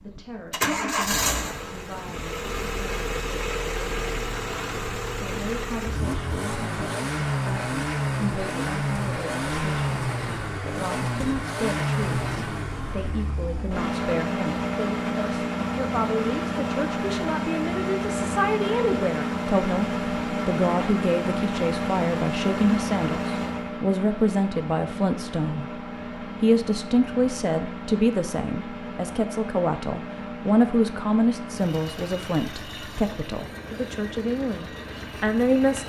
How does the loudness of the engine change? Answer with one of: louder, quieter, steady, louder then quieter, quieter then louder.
quieter.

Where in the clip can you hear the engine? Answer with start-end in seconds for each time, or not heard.
0.0-35.8.